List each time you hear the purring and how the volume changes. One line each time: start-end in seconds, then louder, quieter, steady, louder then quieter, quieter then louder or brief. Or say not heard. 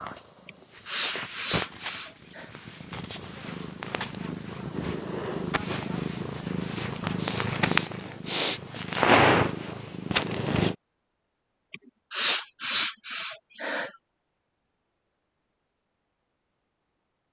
0.0-10.8 louder.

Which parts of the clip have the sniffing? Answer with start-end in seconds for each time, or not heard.
0.5-2.5, 7.2-8.8, 11.7-13.9.